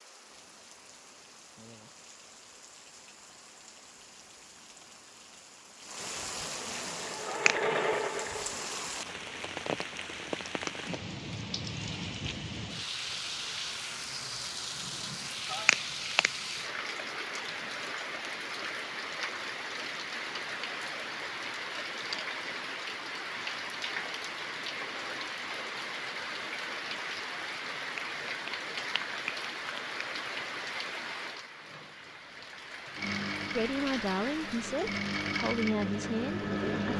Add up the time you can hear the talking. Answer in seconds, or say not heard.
3 s.